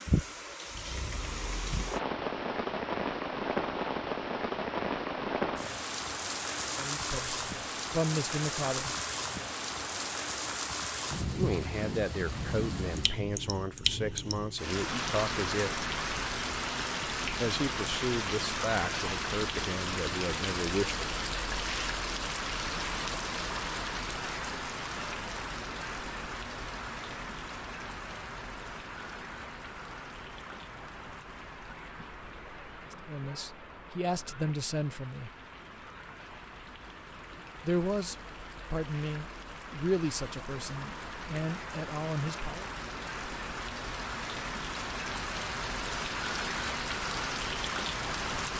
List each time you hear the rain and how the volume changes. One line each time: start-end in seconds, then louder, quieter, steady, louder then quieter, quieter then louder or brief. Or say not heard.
0.0-48.5 quieter then louder.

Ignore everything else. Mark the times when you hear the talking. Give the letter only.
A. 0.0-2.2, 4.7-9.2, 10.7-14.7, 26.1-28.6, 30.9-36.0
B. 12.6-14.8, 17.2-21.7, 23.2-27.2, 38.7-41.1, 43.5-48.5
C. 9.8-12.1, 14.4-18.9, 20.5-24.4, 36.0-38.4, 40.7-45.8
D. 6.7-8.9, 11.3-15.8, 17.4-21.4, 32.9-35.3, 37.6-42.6
D.